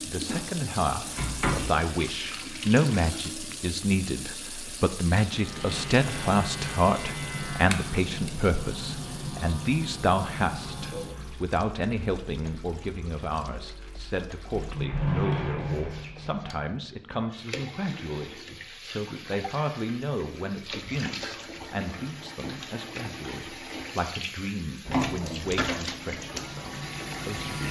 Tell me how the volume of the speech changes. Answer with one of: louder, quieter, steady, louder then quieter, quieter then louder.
quieter.